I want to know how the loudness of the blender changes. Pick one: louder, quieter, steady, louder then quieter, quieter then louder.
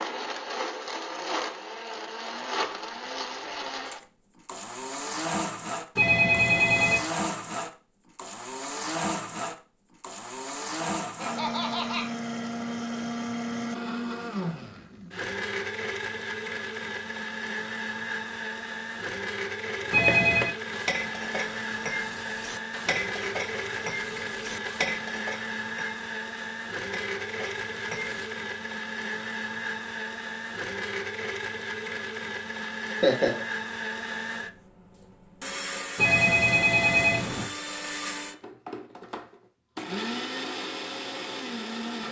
steady.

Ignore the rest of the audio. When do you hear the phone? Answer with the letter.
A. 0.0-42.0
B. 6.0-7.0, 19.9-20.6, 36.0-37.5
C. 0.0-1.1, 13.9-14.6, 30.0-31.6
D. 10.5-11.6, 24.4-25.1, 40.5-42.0
B.